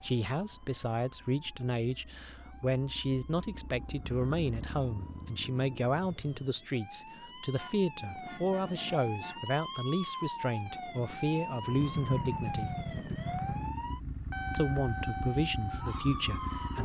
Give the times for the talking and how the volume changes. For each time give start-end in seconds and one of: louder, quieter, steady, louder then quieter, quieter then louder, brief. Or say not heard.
0.0-12.7 steady
14.5-16.7 brief.